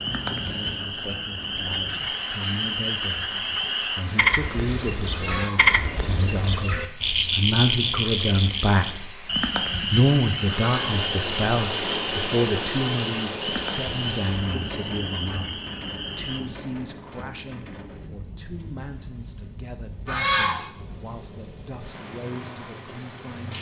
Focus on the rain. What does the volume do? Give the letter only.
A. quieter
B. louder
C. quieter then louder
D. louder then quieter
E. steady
D.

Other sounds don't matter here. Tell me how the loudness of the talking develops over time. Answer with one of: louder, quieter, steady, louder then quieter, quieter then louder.
louder then quieter.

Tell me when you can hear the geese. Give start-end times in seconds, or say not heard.
5.1-5.7, 10.6-11.1, 20.1-20.6.